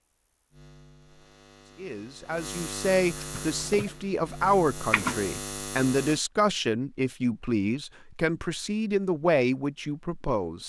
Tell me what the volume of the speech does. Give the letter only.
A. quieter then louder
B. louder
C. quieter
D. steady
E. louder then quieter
D.